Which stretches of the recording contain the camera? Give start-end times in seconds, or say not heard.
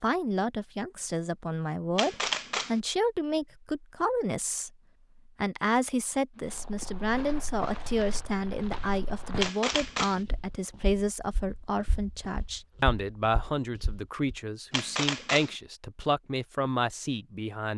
1.9-2.8, 9.4-10.2, 14.7-15.6.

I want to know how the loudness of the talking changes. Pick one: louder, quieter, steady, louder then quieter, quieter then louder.
steady.